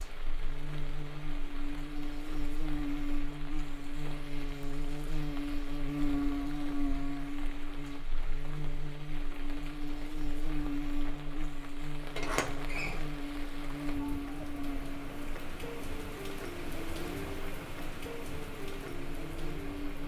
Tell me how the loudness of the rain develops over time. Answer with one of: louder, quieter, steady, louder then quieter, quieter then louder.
louder.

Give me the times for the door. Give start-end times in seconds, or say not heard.
12.1-13.1.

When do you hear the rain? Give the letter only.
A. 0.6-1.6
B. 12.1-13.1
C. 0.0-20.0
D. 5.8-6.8
C.